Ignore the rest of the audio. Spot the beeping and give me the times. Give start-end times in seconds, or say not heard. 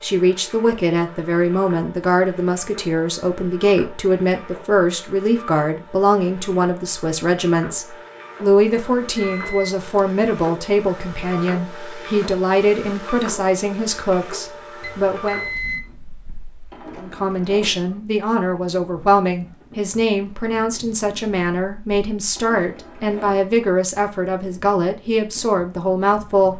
8.7-10.1, 14.8-15.8.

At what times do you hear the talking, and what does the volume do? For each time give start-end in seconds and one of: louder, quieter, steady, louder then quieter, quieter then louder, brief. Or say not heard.
0.0-15.4 steady
17.0-26.5 steady.